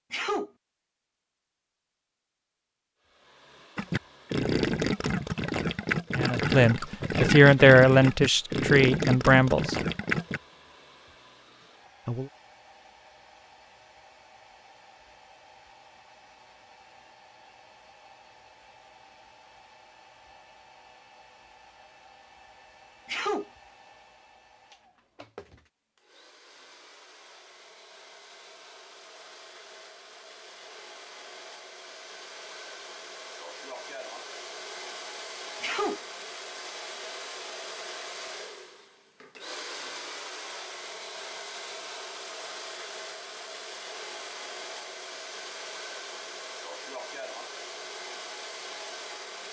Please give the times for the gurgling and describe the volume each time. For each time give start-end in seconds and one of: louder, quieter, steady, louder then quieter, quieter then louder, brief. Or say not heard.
3.8-10.4 steady.